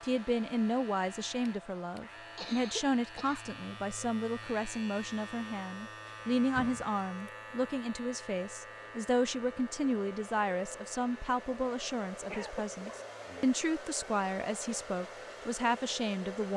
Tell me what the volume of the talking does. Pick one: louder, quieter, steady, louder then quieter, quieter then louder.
steady.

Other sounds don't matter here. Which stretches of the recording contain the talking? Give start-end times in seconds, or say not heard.
0.0-16.5.